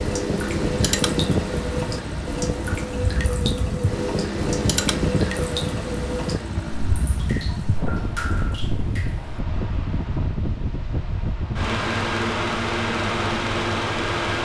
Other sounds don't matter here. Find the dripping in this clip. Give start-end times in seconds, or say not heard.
0.0-9.4.